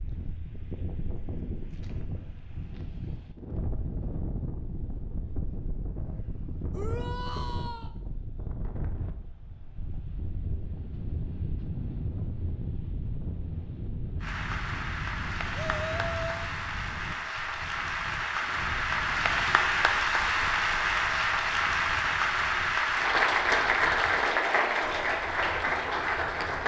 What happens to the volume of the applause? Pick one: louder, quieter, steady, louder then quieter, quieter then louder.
louder.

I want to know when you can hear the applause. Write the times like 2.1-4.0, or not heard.
14.2-26.6.